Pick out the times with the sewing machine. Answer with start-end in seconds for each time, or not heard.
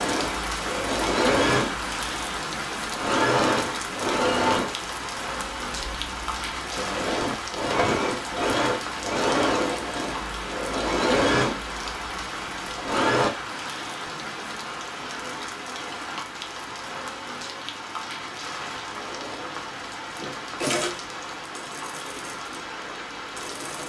0.0-13.3, 18.9-23.8.